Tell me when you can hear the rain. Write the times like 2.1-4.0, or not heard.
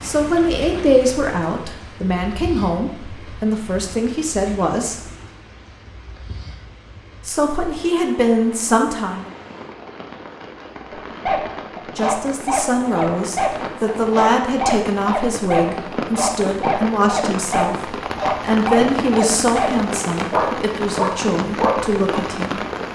0.0-22.8.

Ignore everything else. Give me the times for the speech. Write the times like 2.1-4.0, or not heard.
0.0-5.0, 7.2-9.3, 11.9-22.6.